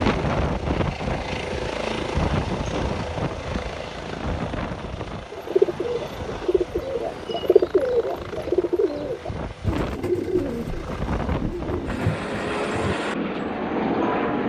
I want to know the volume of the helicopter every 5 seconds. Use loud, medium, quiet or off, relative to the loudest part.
loud, medium, loud.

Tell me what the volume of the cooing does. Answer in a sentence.
The volume of the cooing goes up, then down.